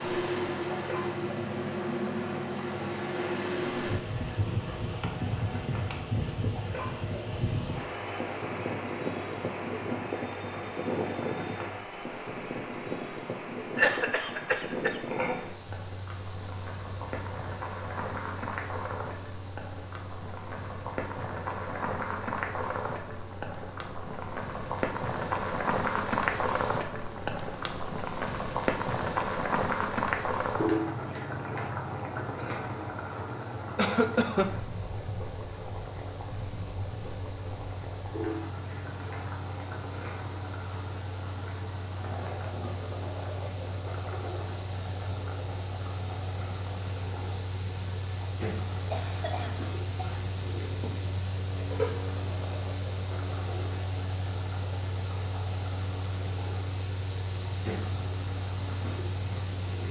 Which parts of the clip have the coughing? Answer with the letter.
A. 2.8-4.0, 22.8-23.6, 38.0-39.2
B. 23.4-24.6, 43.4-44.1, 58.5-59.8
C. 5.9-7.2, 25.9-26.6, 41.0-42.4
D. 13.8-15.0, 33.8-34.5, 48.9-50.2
D.